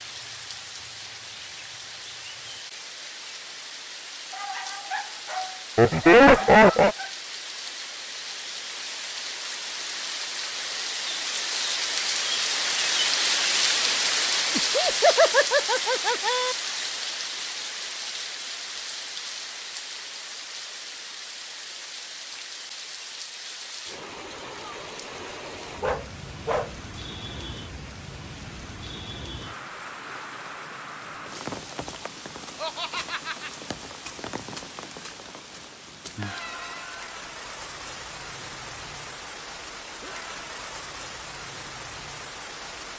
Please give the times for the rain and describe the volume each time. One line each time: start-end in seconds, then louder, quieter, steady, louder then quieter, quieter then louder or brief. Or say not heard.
0.0-42.9 louder then quieter.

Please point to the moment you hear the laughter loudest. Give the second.
6 s.